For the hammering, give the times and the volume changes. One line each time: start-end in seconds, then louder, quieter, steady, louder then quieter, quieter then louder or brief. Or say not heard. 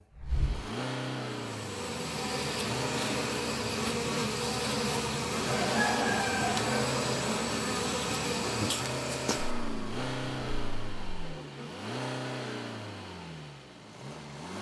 not heard.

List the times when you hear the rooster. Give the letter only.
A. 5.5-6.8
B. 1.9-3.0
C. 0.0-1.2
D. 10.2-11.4
A.